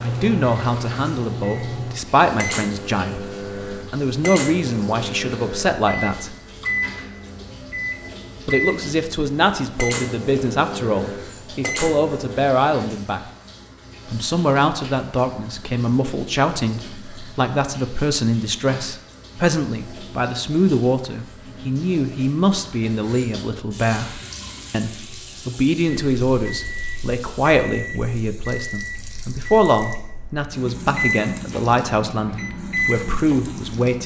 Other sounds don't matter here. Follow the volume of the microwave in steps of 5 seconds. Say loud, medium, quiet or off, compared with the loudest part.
loud, loud, loud, off, off, medium, loud.